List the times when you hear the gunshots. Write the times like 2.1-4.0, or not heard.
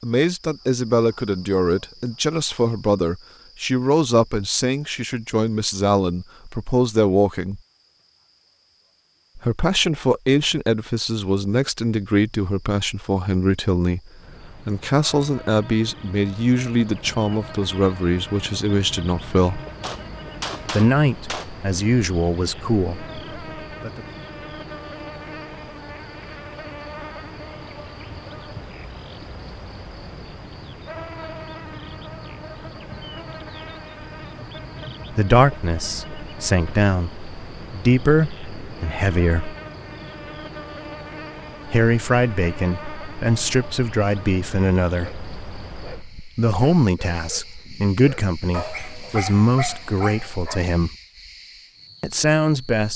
19.8-21.5.